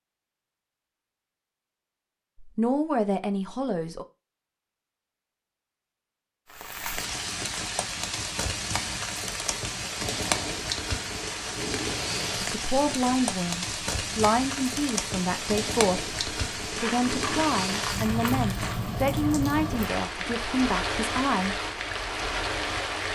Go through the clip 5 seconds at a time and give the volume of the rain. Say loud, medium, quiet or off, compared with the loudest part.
off, loud, loud, loud, loud.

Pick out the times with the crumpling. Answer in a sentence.
You can hear the crumpling from 16.8 to 18.8 s.